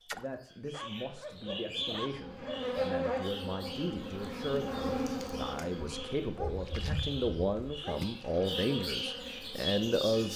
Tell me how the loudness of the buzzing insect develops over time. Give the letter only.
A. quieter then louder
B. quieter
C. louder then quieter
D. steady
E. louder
B.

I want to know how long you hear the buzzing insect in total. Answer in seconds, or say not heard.
8 s.